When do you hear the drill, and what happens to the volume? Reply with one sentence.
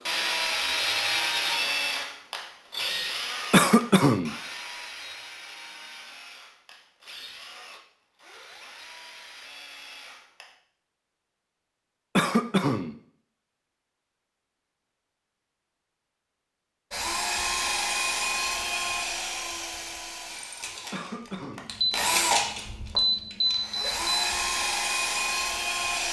The drill can be heard from 0.0 to 10.6 s, getting quieter; and from 16.9 to 26.0 s, getting quieter then louder.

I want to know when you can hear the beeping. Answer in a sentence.
The beeping can be heard from 21.7 to 24.2 s.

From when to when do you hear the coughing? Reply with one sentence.
The coughing can be heard from 3.5 to 4.3 s, from 12.2 to 12.9 s and from 20.9 to 21.7 s.